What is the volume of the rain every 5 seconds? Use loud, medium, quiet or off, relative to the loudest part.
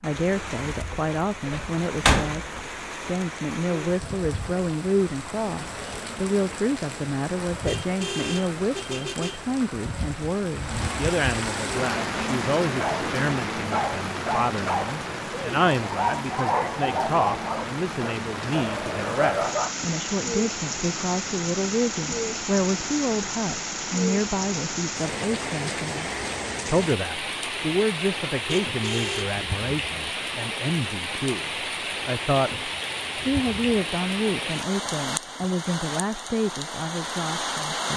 medium, medium, loud, loud, loud, loud, loud, loud.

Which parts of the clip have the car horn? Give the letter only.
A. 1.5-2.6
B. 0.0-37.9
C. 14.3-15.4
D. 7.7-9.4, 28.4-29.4
D.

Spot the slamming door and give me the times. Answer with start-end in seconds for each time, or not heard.
1.5-2.6.